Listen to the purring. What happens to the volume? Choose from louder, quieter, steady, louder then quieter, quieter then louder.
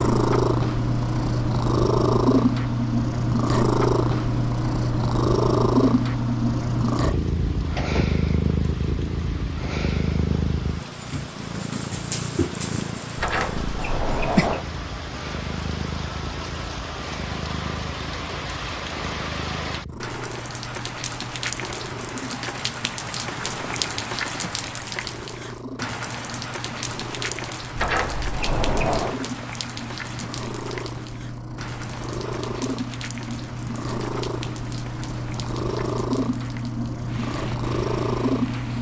quieter then louder.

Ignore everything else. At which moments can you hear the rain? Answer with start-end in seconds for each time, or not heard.
0.0-38.7.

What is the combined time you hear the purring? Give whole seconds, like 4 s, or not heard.
39 s.